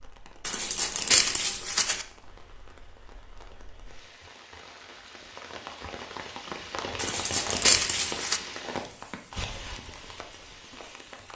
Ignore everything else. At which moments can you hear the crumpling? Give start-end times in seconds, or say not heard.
0.5-2.0, 7.0-8.4.